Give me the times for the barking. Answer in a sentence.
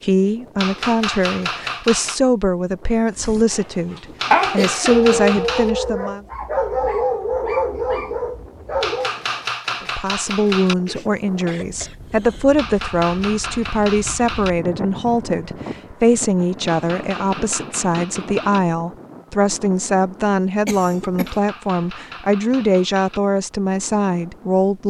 You can hear the barking from 3.1 to 9.2 s.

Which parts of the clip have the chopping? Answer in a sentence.
The chopping can be heard from 0.6 to 2.2 s, from 4.2 to 5.7 s, from 8.8 to 10.8 s, from 12.6 to 14.5 s, from 16.6 to 18.6 s and from 21.2 to 23.2 s.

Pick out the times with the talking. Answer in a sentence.
You can hear the talking from 0.0 to 6.2 s and from 9.8 to 24.8 s.